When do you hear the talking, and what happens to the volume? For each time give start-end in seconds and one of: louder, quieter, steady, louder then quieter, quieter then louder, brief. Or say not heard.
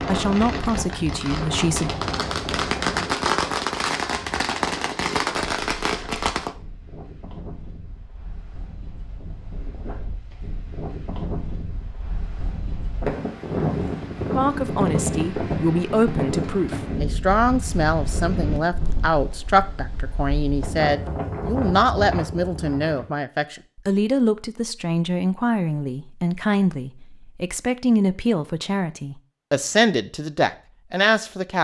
0.1-1.9 brief
14.3-31.5 steady.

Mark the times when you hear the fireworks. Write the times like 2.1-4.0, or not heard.
0.0-6.5.